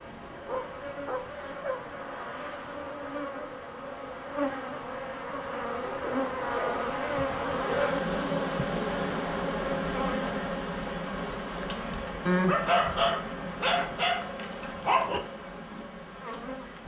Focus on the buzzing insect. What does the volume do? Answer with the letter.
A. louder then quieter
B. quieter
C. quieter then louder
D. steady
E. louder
A.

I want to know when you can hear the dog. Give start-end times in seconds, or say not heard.
0.5-1.8, 5.8-7.9, 12.2-15.2.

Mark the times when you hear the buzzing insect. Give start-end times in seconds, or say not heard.
0.0-16.8.